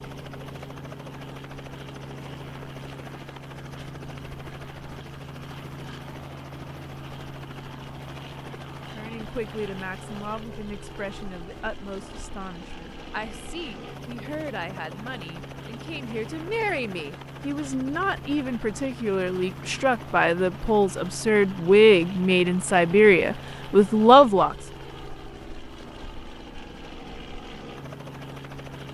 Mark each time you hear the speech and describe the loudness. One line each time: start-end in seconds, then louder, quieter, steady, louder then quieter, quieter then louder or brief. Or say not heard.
8.9-24.6 louder.